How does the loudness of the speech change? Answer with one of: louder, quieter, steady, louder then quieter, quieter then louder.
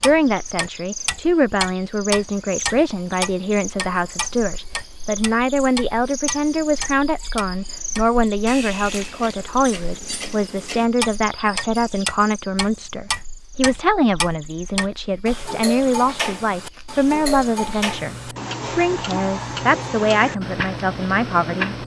steady.